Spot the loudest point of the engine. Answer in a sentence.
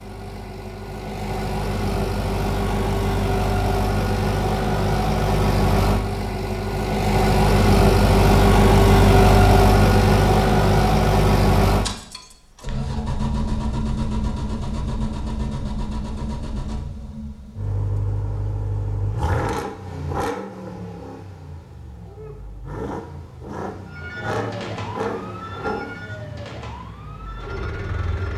The volume of the engine peaks at 9 seconds.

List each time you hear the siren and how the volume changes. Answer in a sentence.
You can hear the siren from 23.9 to 28.3 s, getting quieter.